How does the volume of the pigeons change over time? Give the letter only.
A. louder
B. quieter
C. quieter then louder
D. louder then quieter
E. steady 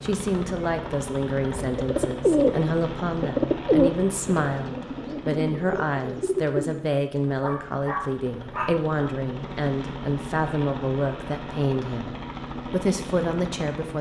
B.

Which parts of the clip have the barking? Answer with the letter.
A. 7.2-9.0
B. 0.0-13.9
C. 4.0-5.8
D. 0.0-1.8
A.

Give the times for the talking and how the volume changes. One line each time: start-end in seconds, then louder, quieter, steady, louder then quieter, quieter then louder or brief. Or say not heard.
0.0-13.9 steady.